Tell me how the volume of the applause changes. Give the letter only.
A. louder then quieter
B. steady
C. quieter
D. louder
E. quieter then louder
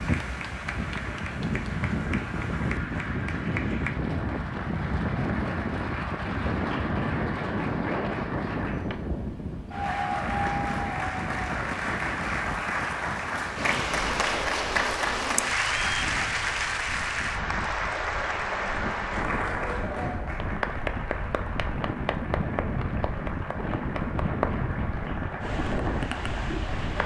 A.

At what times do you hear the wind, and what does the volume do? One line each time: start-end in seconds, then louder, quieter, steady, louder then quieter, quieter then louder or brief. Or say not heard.
0.0-27.0 quieter then louder.